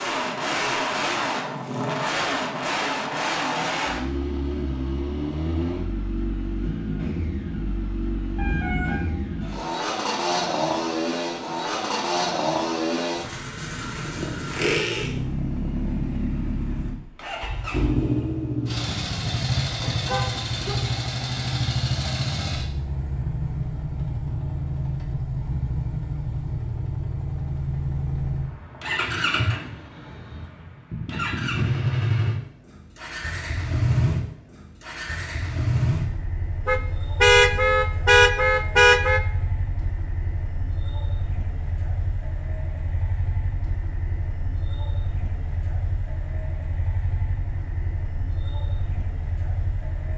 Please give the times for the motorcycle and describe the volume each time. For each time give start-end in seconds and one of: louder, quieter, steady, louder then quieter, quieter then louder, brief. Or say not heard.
0.0-50.1 quieter.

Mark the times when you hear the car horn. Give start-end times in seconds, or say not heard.
8.3-9.1, 18.9-21.0, 36.6-39.2.